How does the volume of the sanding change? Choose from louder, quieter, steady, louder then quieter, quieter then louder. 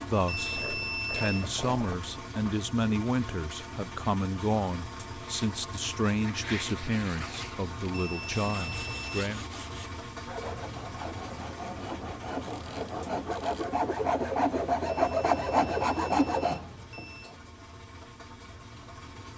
louder.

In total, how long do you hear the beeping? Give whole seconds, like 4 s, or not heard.
5 s.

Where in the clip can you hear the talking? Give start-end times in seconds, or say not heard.
0.0-9.4.